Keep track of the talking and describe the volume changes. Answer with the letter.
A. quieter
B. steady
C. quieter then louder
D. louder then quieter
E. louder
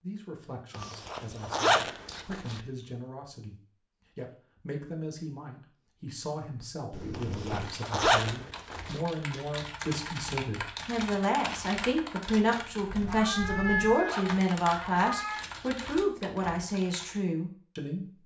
E.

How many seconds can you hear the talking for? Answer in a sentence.
You can hear the talking for 18 seconds altogether.